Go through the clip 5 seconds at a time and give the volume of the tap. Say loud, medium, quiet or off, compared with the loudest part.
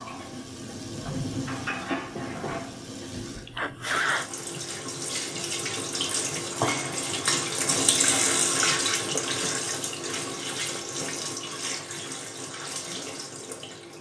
medium, loud, medium.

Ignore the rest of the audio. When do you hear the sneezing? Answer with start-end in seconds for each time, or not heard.
3.0-4.3.